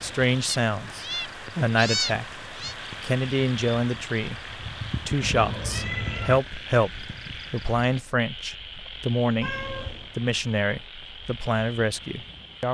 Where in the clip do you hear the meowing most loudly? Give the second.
2 s.